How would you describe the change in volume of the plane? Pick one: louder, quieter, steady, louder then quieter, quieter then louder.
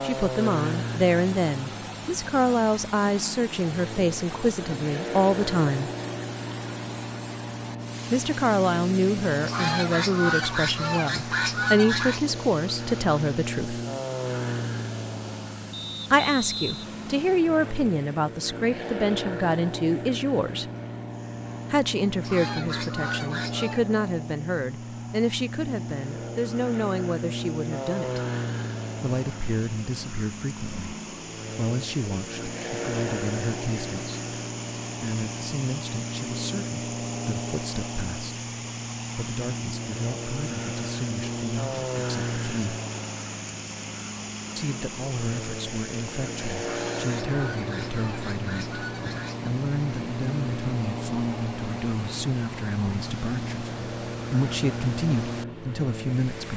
steady.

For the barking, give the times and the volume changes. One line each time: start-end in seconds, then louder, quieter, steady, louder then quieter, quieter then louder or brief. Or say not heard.
not heard.